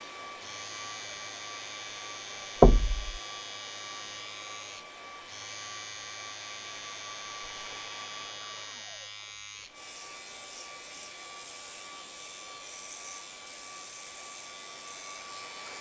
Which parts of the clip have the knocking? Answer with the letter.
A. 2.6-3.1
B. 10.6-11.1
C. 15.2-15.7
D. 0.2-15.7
A.